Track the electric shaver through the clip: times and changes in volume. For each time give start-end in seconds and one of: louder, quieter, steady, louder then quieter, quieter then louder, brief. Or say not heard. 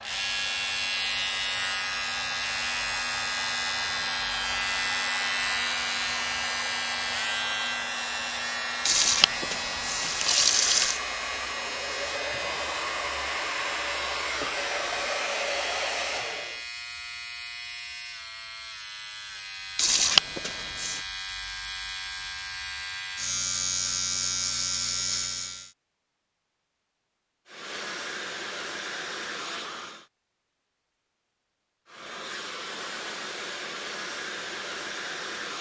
0.0-25.7 quieter then louder.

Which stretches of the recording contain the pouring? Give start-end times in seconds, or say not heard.
8.8-11.0, 19.8-21.0.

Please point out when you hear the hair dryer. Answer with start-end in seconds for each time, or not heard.
0.0-16.6, 27.4-30.1, 31.9-35.5.